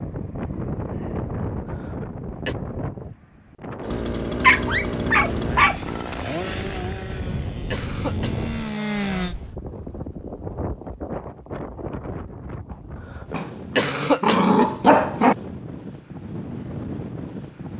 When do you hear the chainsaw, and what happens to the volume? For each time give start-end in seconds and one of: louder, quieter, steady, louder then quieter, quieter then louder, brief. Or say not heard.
3.8-9.3 quieter then louder.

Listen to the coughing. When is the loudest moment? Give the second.
14 s.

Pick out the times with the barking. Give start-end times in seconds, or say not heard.
4.4-5.8, 13.3-15.3.